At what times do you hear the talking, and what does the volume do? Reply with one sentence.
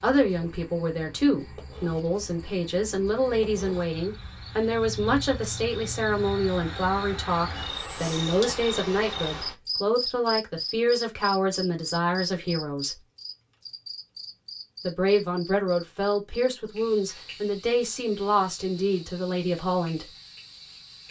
You can hear the talking from 0.0 to 13.0 s, at a steady volume; and from 14.8 to 20.1 s, at a steady volume.